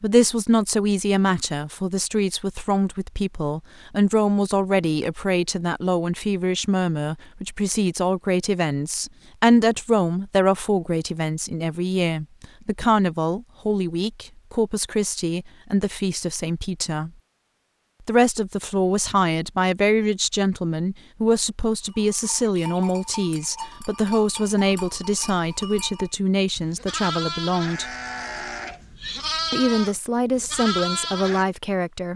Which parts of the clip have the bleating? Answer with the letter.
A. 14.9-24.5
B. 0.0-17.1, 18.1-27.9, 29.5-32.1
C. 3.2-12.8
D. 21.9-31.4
D.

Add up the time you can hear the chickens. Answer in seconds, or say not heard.
not heard.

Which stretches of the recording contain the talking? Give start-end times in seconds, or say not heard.
0.0-17.1, 18.1-27.9, 29.5-32.1.